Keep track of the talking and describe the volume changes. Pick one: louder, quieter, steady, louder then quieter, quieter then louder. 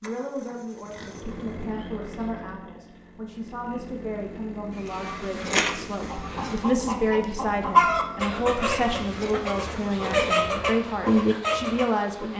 louder.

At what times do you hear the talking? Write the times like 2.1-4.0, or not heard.
0.0-12.3.